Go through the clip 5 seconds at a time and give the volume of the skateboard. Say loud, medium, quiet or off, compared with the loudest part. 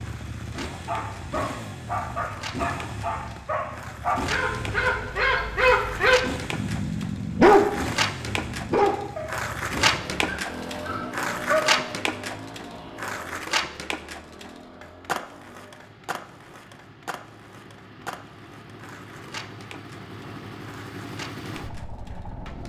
medium, loud, loud, medium, quiet.